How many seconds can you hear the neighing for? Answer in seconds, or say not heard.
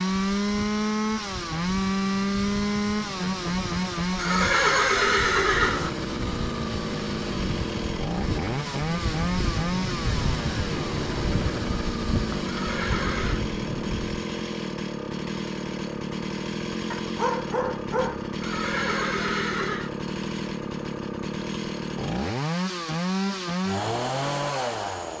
4 s.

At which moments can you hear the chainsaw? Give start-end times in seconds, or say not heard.
0.0-25.1.